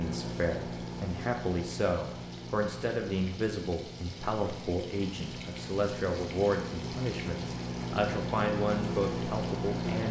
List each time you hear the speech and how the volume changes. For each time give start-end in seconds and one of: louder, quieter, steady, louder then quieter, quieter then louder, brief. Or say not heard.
0.0-10.0 steady.